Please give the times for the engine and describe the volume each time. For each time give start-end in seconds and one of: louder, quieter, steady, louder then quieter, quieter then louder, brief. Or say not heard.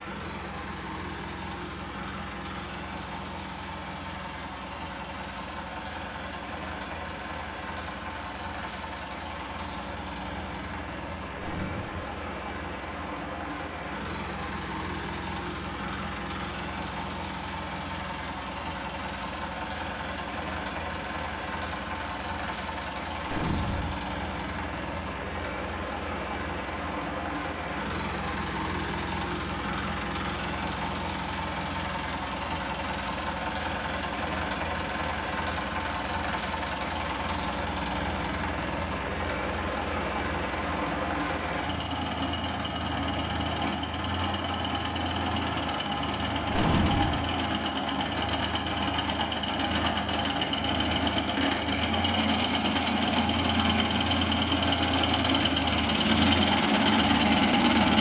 0.0-57.9 louder.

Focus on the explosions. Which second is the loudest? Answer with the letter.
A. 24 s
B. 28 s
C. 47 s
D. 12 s
C.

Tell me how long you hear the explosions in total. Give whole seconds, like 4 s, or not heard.
2 s.